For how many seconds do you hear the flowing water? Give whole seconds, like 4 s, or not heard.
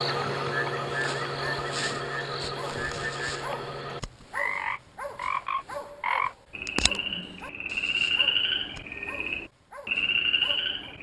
not heard.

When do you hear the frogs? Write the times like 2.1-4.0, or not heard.
0.0-10.9.